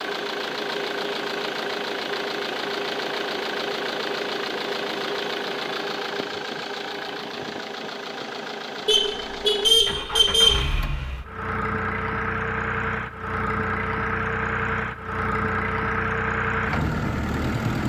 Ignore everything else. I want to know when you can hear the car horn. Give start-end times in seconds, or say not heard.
8.8-10.6.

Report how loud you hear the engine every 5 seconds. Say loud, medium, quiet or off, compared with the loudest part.
loud, medium, loud, loud.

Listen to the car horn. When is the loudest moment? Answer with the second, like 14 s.
10 s.